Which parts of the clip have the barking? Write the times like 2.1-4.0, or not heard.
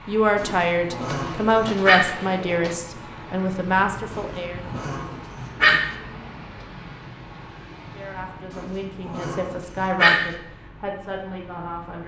0.3-2.0, 4.1-5.9, 8.5-10.3.